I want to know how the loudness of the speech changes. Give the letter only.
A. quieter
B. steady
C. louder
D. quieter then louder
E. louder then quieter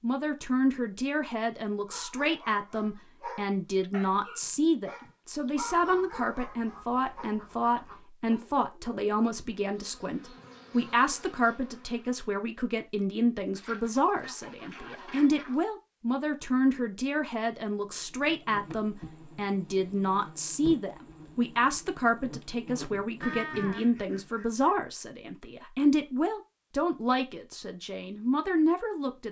B.